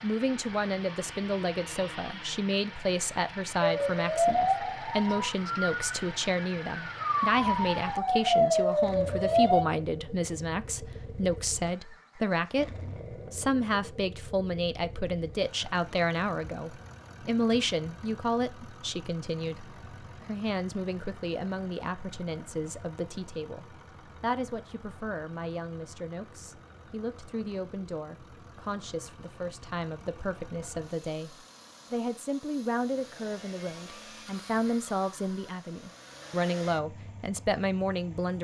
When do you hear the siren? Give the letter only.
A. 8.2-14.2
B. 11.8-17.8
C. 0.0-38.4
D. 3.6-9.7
D.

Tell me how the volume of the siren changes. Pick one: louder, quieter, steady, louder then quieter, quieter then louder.
quieter then louder.